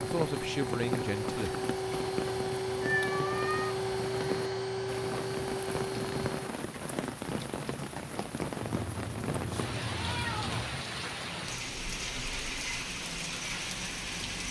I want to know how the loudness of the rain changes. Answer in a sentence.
The volume of the rain stays about the same.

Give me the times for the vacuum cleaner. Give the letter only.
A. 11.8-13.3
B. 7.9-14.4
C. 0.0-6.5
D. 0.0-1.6
C.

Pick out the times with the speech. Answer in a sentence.
You can hear the speech from 0.0 to 1.6 s.